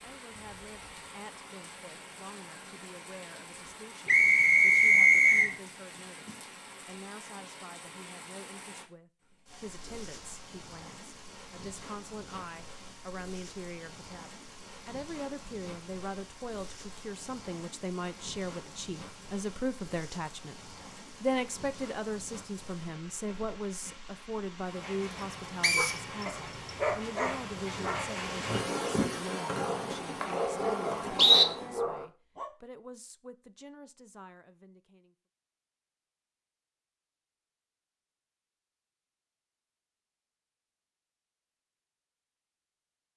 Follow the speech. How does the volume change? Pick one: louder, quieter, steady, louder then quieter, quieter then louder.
louder then quieter.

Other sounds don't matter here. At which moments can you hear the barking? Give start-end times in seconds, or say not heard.
25.8-32.5.